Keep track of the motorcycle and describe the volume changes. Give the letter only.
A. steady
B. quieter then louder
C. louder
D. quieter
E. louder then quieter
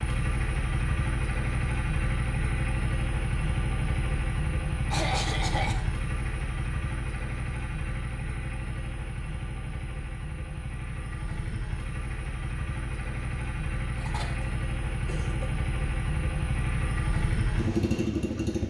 B.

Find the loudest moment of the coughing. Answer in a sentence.
The loudest moment of the coughing is at 5 seconds.